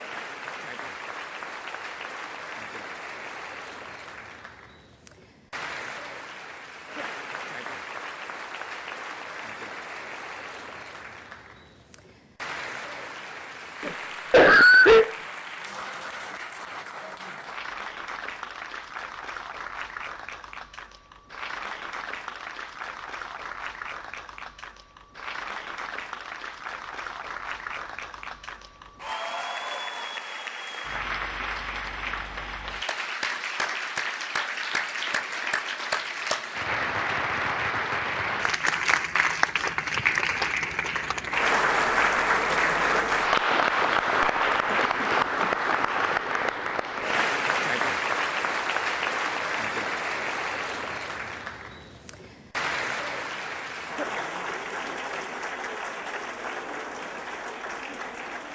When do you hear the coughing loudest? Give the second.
15 s.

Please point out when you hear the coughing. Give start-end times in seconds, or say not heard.
13.8-15.1, 44.6-45.5.